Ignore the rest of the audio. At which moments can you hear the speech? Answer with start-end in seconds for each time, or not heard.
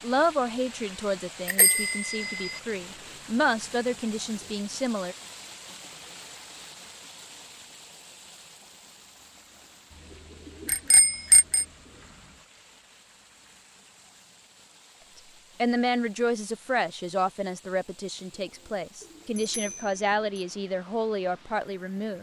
0.0-5.2, 15.6-22.1.